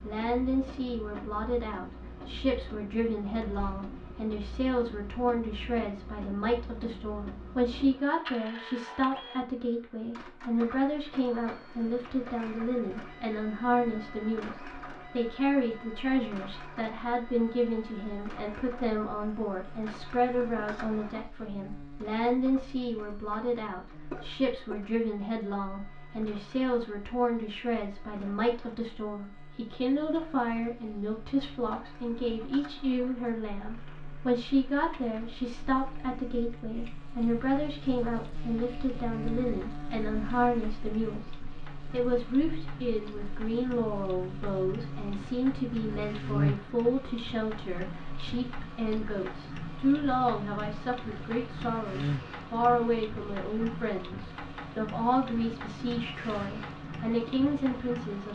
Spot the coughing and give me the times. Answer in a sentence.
You can hear the coughing from 24.1 to 24.8 s.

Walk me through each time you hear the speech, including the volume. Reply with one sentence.
You can hear the speech from 0.0 to 41.3 s, at a steady volume; and from 41.9 to 58.3 s, at a steady volume.